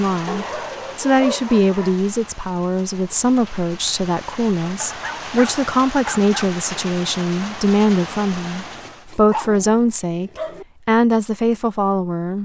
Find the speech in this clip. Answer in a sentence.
The speech can be heard from 0.0 to 12.3 s.